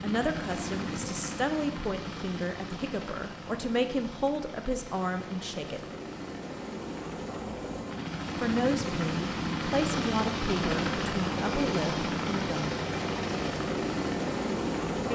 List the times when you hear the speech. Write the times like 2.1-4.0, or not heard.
0.0-5.8, 8.4-12.8.